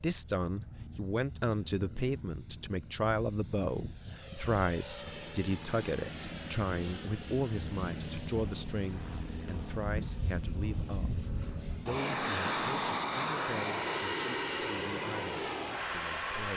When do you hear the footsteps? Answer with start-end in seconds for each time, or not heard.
not heard.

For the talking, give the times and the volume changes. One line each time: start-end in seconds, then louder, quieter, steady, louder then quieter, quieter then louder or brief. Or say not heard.
0.0-16.5 quieter.